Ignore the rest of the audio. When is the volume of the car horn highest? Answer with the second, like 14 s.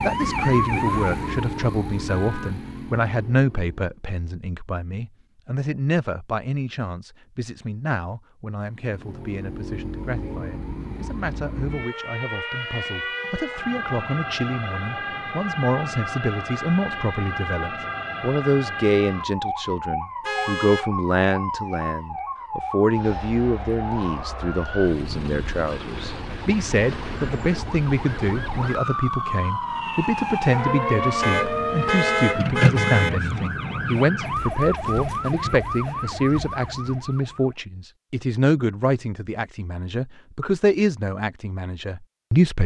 32 s.